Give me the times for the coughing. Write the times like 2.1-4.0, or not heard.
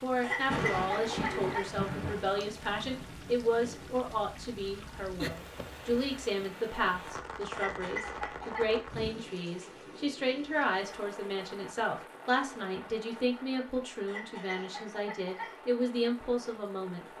0.2-1.7, 7.5-8.8, 14.1-15.6.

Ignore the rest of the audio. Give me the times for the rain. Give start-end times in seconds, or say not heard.
0.0-17.1.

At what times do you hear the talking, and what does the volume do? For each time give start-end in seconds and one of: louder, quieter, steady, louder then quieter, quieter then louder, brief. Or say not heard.
0.0-17.1 steady.